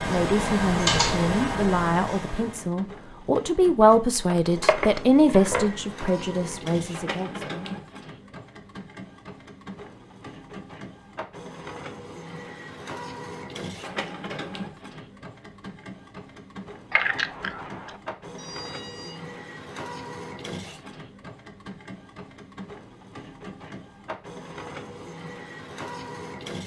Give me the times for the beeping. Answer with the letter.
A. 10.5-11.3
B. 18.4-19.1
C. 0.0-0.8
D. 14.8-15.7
B.